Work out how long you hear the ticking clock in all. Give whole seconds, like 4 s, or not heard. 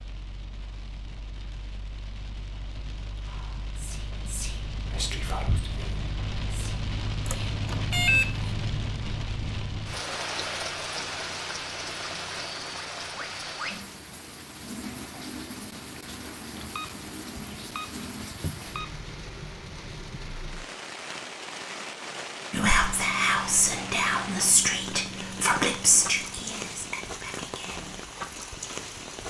not heard.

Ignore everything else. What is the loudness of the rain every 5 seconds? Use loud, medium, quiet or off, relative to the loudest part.
medium, loud, loud, medium, loud, loud.